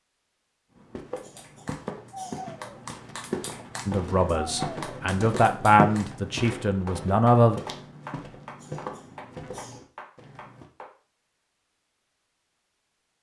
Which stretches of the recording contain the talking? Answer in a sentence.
You can hear the talking from 3.9 to 7.6 s.